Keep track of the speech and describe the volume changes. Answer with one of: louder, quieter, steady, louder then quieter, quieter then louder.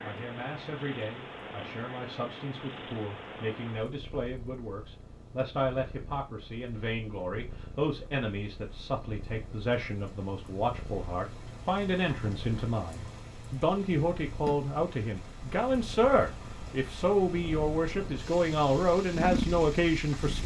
louder.